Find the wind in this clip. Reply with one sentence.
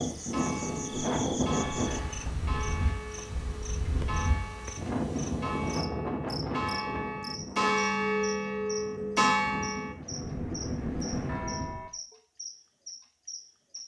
The wind can be heard from 0.0 to 11.8 s.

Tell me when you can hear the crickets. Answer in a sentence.
You can hear the crickets from 0.0 to 13.8 s.